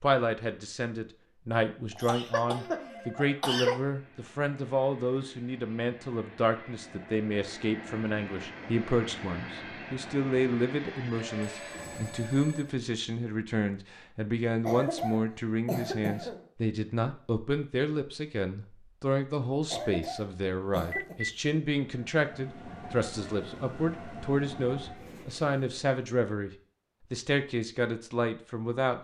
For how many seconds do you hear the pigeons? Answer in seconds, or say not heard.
not heard.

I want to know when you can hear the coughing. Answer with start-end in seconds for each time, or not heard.
1.9-3.8, 14.7-16.4, 19.7-21.1.